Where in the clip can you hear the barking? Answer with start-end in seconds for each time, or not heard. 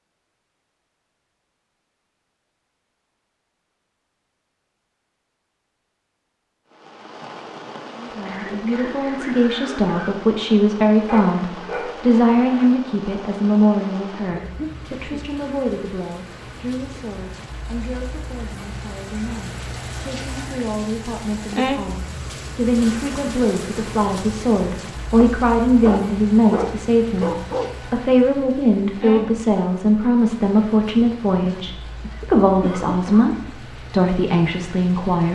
11.1-12.7, 25.2-27.7.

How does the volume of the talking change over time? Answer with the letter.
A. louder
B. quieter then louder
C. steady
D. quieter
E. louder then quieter
B.